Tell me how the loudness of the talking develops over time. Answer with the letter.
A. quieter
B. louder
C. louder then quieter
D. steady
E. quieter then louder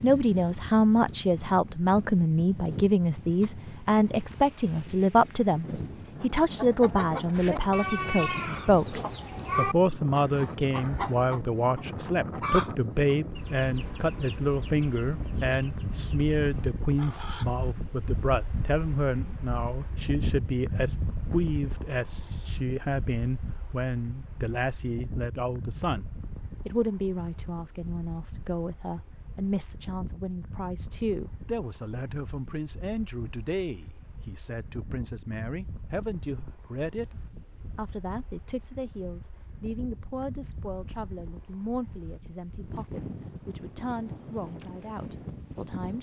A.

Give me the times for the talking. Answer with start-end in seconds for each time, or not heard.
0.0-45.9.